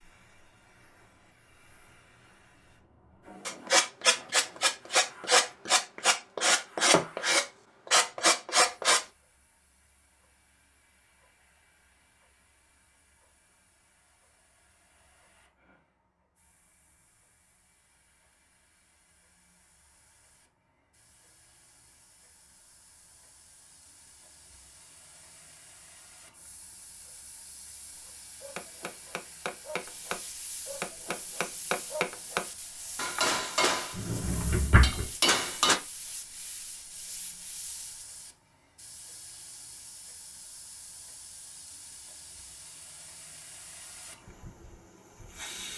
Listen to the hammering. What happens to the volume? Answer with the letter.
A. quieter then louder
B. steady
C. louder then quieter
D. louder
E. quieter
D.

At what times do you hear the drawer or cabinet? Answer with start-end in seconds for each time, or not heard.
33.9-35.1.